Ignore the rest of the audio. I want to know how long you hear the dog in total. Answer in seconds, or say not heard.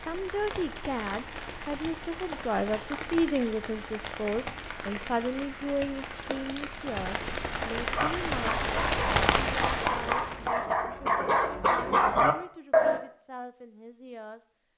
5 s.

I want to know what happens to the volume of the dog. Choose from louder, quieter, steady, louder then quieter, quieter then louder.
louder.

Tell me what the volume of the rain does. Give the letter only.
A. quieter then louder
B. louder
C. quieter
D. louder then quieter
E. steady
B.